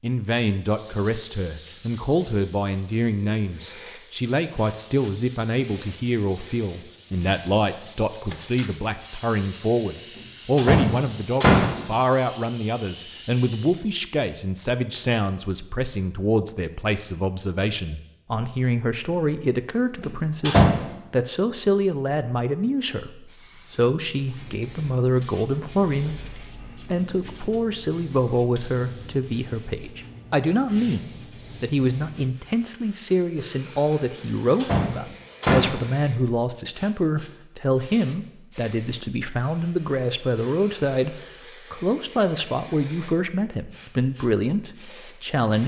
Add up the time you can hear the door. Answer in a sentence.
The door can be heard for 3 seconds in total.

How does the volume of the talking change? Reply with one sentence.
The volume of the talking stays about the same.